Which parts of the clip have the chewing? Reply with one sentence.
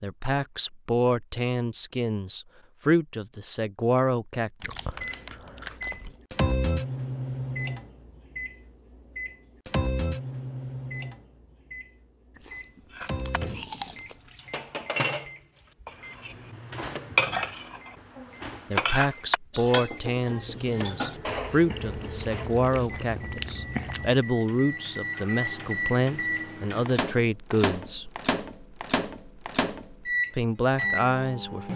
You can hear the chewing from 4.6 to 6.2 s, from 12.3 to 14.3 s and from 21.6 to 24.2 s.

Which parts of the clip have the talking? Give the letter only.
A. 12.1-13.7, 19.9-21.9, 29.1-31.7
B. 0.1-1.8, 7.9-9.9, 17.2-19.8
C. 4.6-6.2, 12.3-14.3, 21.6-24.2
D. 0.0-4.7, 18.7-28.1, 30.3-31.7
D.